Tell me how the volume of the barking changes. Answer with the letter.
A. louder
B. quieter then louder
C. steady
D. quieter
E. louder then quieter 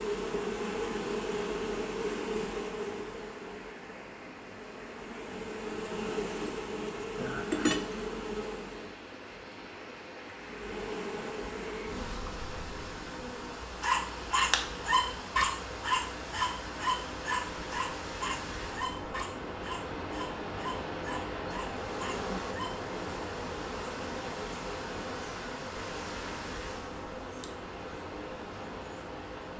D.